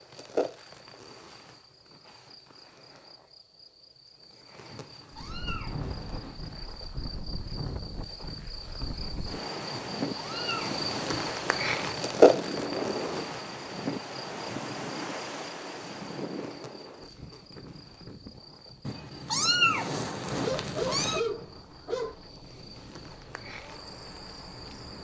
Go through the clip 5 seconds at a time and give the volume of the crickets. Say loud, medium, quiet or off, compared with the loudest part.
quiet, quiet, loud, quiet, quiet.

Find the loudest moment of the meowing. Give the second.
20 s.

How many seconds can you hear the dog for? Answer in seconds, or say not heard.
2 s.